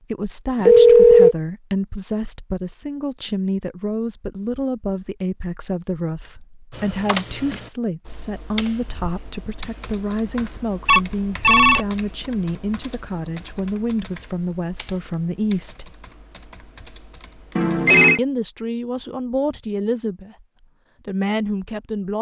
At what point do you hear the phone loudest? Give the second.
1 s.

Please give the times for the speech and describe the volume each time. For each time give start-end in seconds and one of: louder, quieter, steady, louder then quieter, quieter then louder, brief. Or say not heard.
0.1-15.9 steady
18.1-20.4 brief
21.1-22.1 brief.